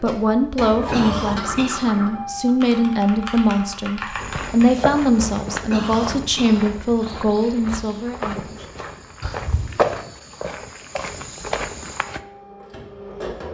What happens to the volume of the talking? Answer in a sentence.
The volume of the talking stays about the same.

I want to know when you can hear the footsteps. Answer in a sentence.
You can hear the footsteps from 4.0 to 12.2 s.